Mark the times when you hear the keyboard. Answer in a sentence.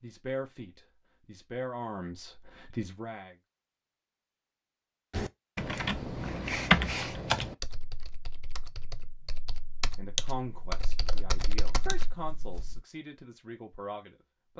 You can hear the keyboard from 5.1 to 12.8 s.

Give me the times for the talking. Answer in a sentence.
You can hear the talking from 0.0 to 3.4 s and from 9.9 to 14.5 s.